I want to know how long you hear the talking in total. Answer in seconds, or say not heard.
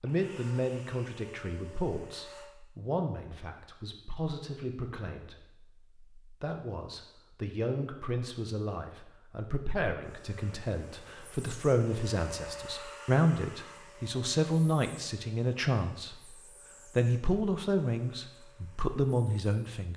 20 s.